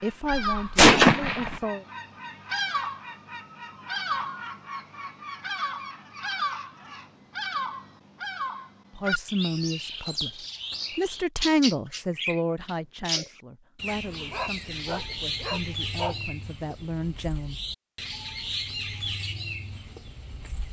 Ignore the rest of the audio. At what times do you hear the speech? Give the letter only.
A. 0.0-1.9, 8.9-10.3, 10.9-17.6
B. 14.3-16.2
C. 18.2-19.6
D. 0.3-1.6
A.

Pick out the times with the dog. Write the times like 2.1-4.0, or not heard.
14.3-16.2.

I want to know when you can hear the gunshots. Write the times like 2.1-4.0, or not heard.
0.3-1.6.